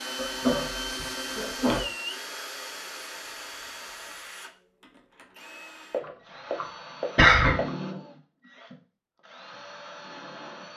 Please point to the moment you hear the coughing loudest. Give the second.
7 s.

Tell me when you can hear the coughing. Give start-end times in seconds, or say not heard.
0.1-1.9, 5.9-7.7.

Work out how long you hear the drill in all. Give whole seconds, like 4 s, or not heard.
11 s.